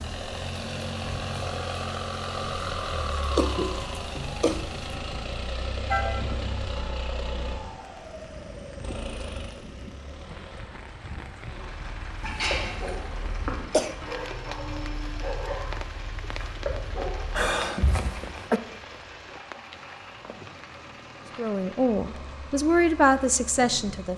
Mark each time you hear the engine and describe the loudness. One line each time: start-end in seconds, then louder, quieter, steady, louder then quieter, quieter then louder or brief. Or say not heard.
0.0-24.1 quieter.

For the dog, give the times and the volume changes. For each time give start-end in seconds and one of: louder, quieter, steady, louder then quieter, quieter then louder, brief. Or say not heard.
11.5-17.5 steady.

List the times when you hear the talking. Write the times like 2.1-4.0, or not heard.
21.4-24.1.